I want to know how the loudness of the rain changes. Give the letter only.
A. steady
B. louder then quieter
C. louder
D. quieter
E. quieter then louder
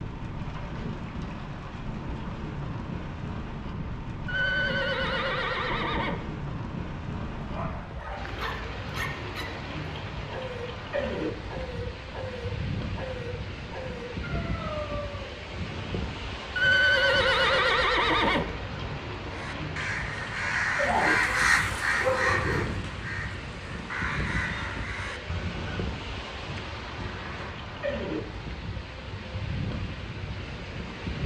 A.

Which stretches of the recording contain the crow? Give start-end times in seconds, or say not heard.
19.2-25.9.